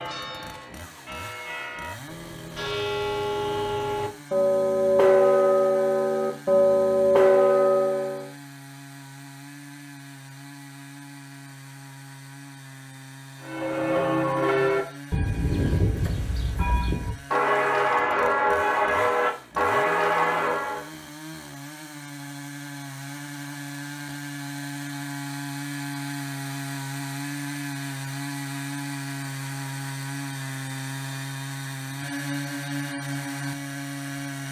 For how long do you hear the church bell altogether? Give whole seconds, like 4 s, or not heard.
16 s.